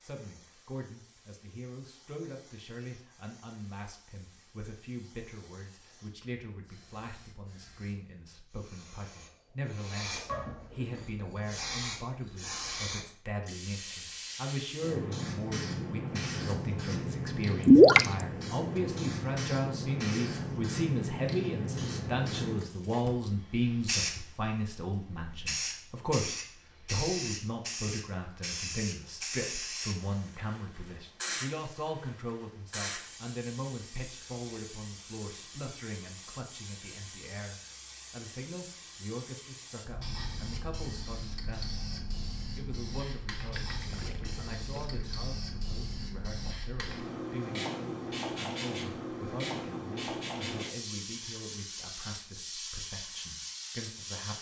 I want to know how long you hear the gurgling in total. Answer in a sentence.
The gurgling can be heard for 2 seconds in total.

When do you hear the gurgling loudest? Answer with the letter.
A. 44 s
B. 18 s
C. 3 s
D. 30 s
B.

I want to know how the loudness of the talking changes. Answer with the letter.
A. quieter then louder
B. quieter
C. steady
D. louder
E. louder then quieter
E.